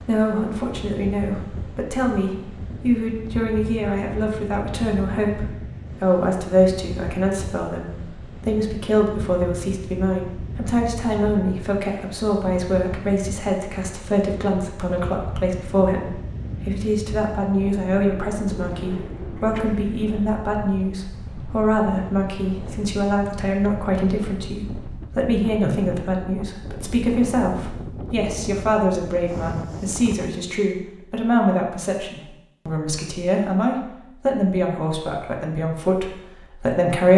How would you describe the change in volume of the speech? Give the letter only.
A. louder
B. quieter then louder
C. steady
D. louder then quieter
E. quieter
C.